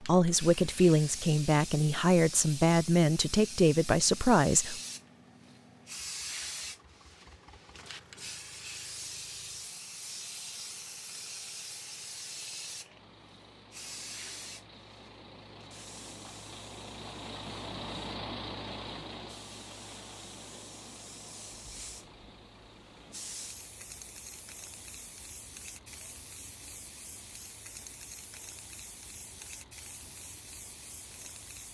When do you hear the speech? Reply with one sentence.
You can hear the speech from 0.0 to 4.8 s.